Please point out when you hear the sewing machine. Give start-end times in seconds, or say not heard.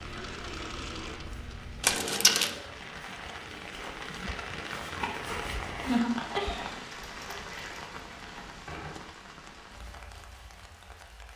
0.0-2.8.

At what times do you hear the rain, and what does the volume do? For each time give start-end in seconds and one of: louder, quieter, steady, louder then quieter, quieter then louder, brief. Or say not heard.
0.0-11.3 louder then quieter.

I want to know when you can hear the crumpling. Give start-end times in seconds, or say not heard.
1.8-2.5, 6.9-8.9.